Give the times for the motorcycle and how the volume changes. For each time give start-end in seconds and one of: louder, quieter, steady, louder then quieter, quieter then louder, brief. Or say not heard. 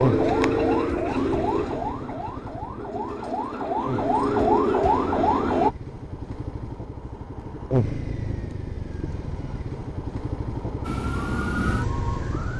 0.0-12.5 louder.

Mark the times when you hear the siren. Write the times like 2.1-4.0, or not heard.
0.0-5.7, 10.8-12.5.